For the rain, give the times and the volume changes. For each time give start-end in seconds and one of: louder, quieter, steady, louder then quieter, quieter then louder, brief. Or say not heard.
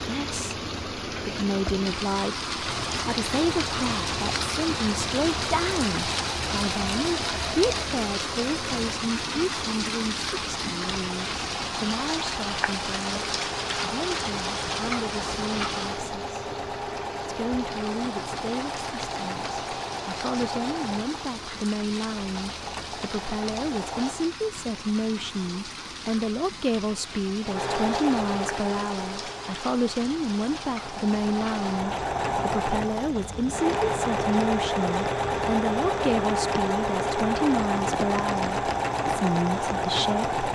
0.0-40.4 quieter.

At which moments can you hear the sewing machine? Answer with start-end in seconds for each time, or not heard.
2.5-24.3, 27.4-40.4.